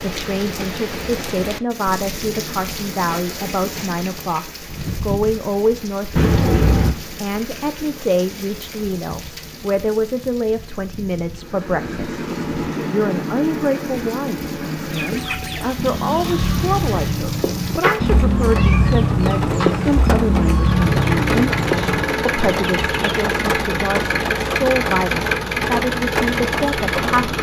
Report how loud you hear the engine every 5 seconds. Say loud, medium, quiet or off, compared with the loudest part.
off, off, medium, medium, loud, loud.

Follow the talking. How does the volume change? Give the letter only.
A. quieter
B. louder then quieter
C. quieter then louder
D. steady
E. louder
D.